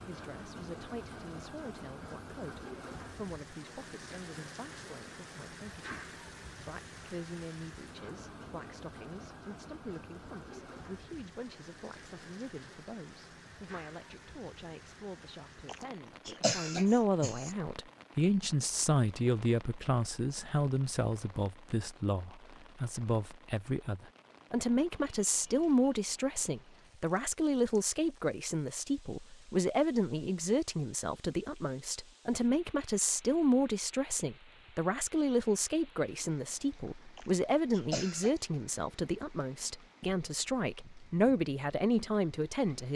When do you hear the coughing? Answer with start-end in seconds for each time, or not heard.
15.7-17.6, 37.1-38.4.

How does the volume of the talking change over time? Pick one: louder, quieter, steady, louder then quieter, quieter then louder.
louder.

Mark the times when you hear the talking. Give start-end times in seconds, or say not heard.
0.1-42.9.